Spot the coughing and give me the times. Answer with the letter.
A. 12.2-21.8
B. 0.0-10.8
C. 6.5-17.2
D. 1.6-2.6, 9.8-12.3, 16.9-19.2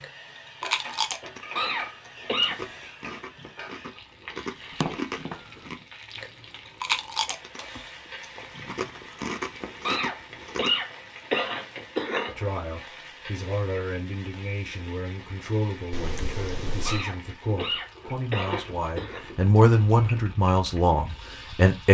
D.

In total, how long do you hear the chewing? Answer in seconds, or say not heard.
11 s.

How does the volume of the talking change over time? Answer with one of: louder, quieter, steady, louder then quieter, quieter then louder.
louder.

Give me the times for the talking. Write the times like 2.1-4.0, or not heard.
12.2-21.8.